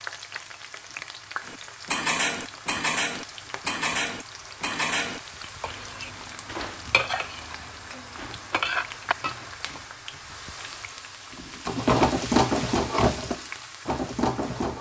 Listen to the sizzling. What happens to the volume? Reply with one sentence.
The volume of the sizzling goes up.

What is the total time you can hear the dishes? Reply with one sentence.
The dishes can be heard for 8 seconds in total.